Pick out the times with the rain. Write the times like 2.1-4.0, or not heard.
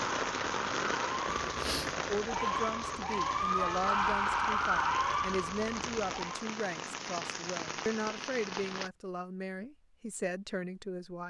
0.0-8.9.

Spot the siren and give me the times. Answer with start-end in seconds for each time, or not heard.
0.0-6.4.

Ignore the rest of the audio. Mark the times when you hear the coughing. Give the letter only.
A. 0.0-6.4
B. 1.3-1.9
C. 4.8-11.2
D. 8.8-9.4
B.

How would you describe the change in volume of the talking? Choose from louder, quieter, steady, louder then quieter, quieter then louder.
steady.